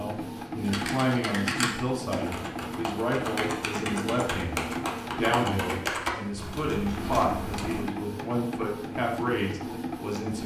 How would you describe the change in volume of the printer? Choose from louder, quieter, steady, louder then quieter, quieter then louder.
steady.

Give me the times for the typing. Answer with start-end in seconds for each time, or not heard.
0.7-7.8.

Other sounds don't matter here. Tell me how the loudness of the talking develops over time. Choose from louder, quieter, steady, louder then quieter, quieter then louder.
steady.